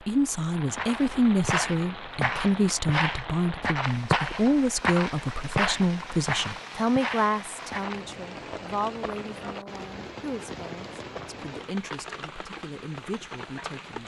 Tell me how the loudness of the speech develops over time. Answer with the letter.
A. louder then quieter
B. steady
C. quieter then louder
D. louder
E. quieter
E.